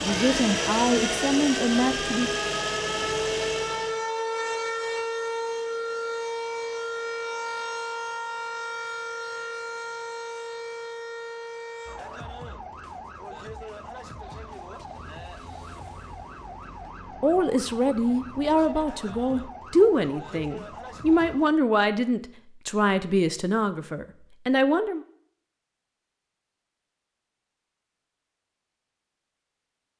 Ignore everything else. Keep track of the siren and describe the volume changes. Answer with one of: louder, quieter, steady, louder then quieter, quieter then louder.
quieter.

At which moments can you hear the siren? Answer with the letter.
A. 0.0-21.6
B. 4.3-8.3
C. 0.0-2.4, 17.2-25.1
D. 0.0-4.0
A.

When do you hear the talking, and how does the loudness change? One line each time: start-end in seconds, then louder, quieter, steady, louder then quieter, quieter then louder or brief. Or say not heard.
0.0-2.4 brief
17.2-25.1 steady.